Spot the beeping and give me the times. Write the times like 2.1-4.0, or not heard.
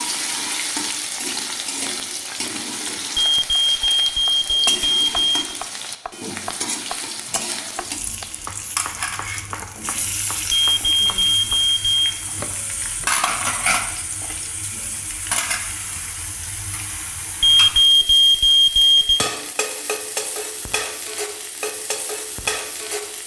3.1-5.4, 10.5-12.0, 17.4-19.2.